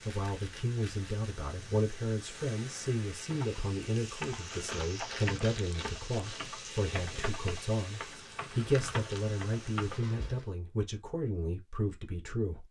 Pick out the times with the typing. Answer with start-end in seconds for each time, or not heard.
3.3-10.0.